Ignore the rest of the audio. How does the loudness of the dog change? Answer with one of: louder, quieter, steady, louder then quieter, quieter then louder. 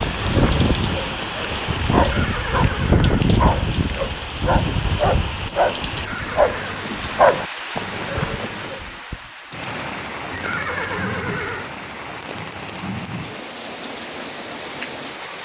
louder.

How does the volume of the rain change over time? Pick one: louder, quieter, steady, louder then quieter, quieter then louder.
quieter.